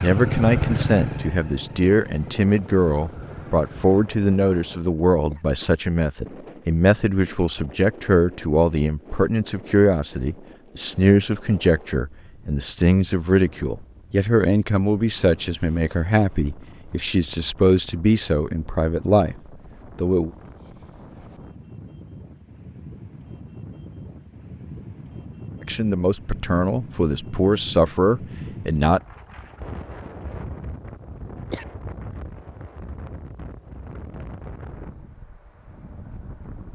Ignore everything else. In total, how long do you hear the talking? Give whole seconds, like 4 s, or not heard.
24 s.